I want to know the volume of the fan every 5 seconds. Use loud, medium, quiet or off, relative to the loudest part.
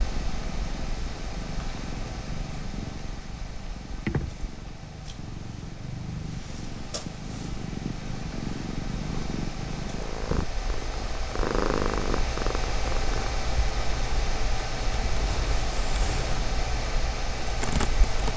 medium, medium, loud, loud.